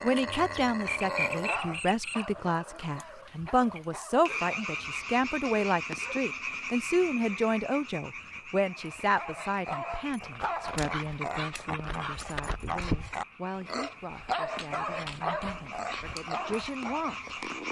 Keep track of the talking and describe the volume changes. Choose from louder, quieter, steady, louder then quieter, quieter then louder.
quieter.